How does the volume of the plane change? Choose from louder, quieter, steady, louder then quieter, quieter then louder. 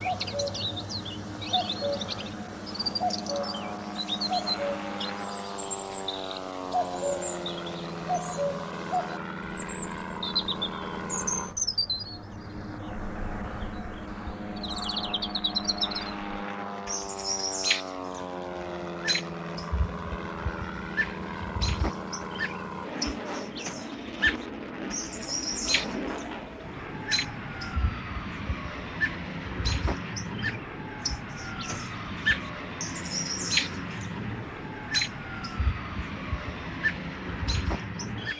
steady.